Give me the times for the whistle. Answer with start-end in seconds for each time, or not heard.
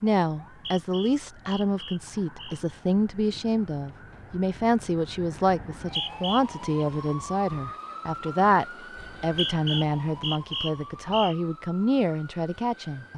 0.5-2.6, 5.8-6.8, 8.9-11.3.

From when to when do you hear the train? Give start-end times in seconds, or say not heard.
not heard.